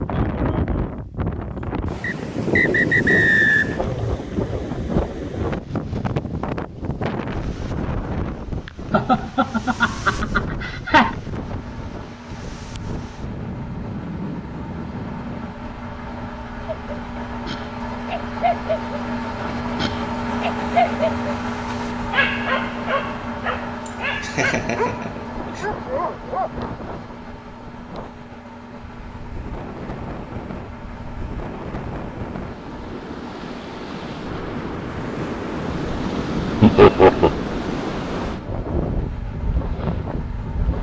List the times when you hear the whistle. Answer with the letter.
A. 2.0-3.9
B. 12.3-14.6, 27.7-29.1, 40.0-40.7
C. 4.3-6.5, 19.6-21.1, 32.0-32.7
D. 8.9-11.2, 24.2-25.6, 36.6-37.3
A.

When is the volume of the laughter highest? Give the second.
37 s.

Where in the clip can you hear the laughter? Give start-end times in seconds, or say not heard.
8.9-11.2, 24.2-25.6, 36.6-37.3.